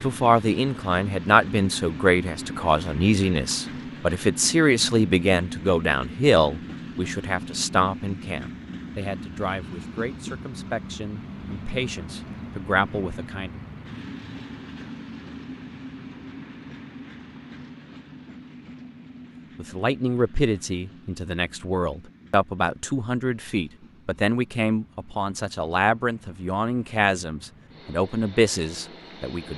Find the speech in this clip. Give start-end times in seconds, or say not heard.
0.0-13.5, 19.6-29.5.